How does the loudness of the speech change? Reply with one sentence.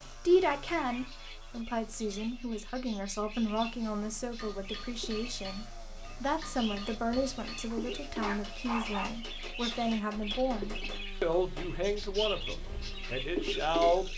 The loudness of the speech stays about the same.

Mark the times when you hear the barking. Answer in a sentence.
The barking can be heard from 7.7 to 9.2 s.